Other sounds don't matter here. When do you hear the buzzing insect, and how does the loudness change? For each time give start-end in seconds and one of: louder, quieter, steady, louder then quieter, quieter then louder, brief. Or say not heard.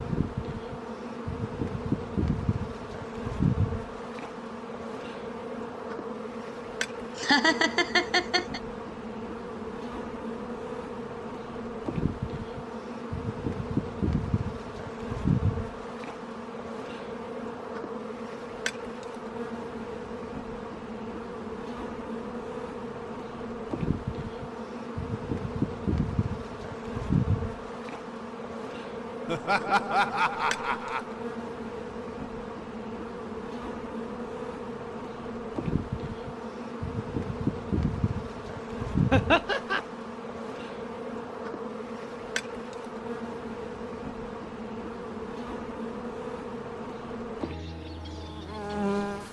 0.0-49.2 steady.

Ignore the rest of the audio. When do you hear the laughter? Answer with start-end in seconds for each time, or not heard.
7.2-8.6, 29.2-31.1, 39.1-39.8.